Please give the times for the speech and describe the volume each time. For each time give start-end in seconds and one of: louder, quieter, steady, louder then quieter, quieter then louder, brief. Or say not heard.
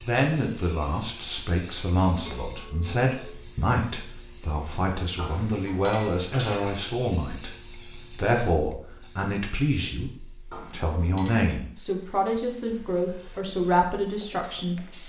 0.1-14.8 steady.